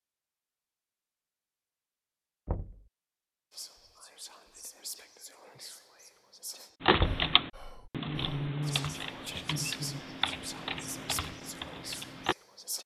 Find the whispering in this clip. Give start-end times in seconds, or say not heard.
3.5-12.8.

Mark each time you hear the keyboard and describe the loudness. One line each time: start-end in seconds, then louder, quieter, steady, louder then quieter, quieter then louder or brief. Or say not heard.
6.8-12.3 quieter.